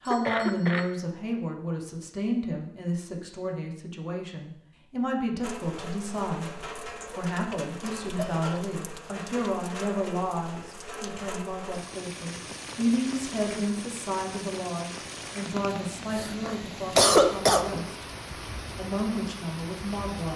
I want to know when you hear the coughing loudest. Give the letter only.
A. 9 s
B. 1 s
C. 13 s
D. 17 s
D.